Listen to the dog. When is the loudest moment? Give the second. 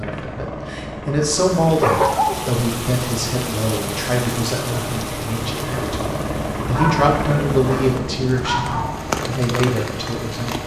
2 s.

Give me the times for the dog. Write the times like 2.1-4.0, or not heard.
1.8-2.5, 6.7-9.1.